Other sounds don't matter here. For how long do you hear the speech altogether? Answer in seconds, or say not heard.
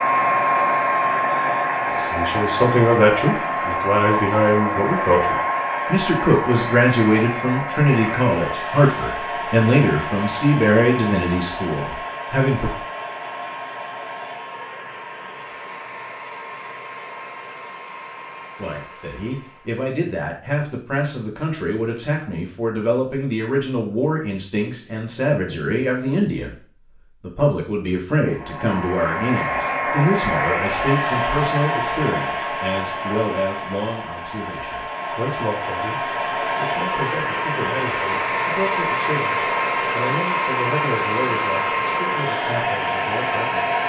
35 s.